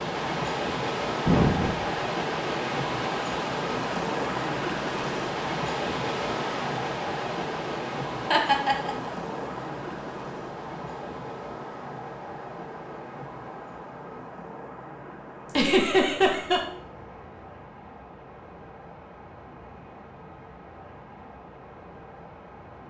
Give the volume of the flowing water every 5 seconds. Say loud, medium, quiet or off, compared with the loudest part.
loud, loud, medium, quiet, quiet.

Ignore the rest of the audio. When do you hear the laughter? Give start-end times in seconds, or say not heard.
1.2-2.0, 8.3-9.1, 15.6-16.6.